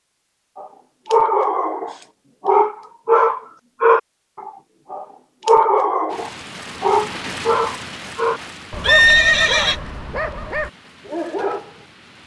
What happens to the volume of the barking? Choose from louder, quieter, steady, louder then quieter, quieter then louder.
quieter.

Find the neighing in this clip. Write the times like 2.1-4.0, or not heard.
8.8-9.8.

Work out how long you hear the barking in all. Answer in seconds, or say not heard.
11 s.